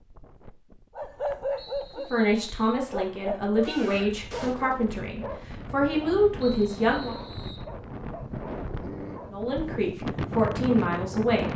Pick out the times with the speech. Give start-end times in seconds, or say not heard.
1.9-7.2, 9.3-11.5.